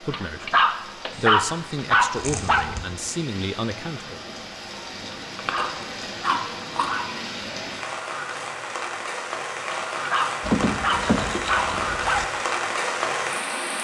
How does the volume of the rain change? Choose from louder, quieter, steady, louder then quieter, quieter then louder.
louder.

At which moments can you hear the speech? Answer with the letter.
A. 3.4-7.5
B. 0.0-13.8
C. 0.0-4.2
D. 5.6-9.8
C.